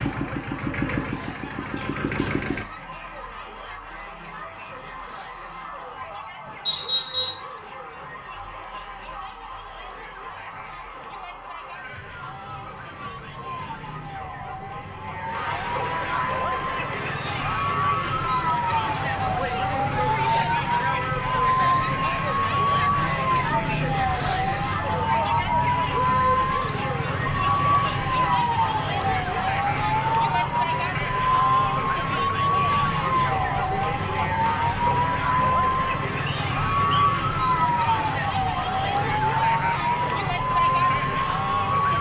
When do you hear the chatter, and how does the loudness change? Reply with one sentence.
The chatter can be heard from 0.1 to 41.9 s, getting louder.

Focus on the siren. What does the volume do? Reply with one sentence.
The loudness of the siren goes up.